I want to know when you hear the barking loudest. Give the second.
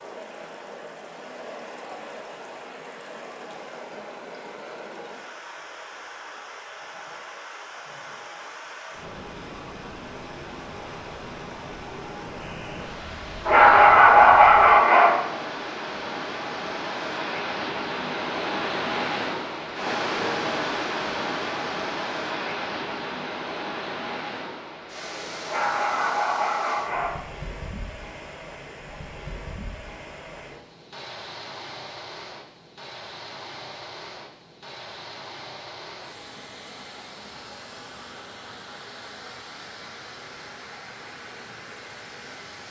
14 s.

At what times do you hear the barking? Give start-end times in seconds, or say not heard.
13.4-15.2, 25.4-27.2.